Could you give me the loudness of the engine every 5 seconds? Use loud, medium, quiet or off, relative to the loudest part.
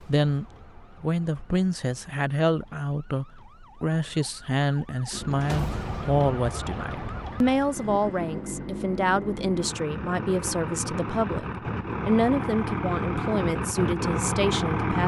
off, medium, loud.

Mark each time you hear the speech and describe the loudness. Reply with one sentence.
The speech can be heard from 0.0 to 15.0 s, at a steady volume.